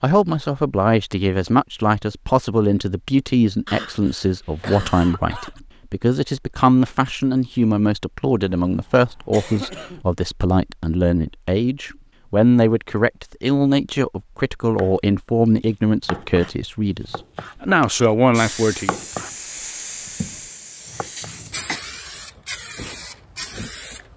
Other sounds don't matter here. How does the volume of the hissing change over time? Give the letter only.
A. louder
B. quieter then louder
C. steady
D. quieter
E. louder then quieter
C.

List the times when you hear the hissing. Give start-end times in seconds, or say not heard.
18.3-24.1.